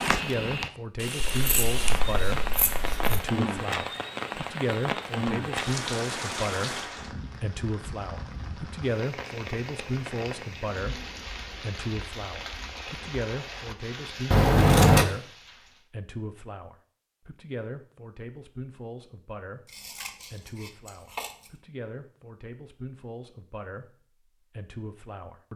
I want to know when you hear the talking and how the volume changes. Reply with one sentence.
You can hear the talking from 0.1 to 25.5 s, getting quieter.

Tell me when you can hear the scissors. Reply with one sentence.
The scissors can be heard from 1.2 to 3.2 s, from 14.3 to 15.1 s and from 19.6 to 21.5 s.